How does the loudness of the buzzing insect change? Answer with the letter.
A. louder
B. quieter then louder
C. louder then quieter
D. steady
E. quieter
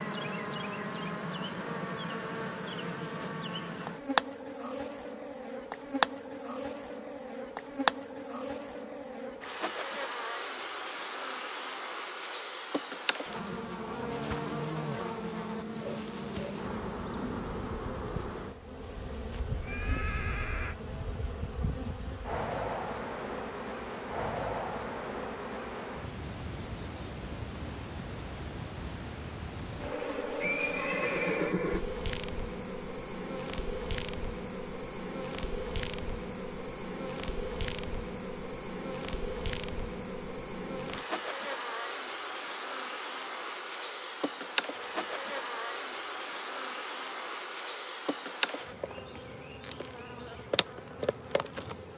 D.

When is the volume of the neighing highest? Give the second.
31 s.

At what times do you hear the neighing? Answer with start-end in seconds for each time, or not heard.
19.3-20.8, 30.4-31.9.